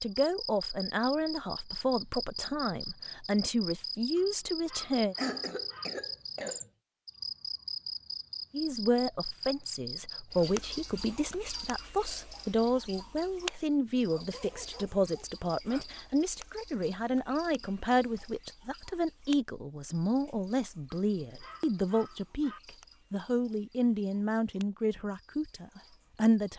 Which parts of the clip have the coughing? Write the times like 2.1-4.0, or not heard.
5.2-6.7.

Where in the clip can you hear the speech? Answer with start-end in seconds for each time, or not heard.
0.0-5.2, 8.5-26.5.